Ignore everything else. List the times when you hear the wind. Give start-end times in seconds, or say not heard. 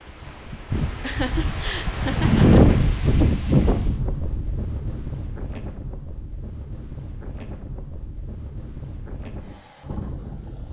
0.0-10.6.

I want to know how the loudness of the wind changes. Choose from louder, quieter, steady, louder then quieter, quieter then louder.
louder then quieter.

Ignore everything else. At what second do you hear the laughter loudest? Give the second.
1 s.